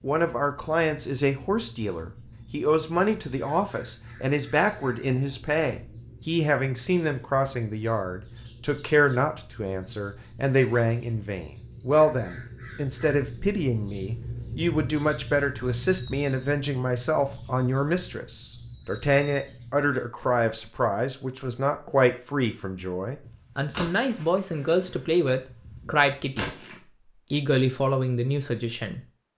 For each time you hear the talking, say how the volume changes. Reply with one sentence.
You can hear the talking from 0.0 to 26.6 s, at a steady volume; and briefly from 27.3 to 29.0 s.